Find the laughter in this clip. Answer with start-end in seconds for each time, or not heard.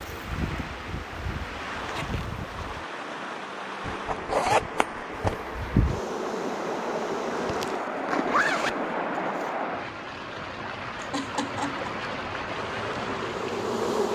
10.9-11.9.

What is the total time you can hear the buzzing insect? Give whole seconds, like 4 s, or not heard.
7 s.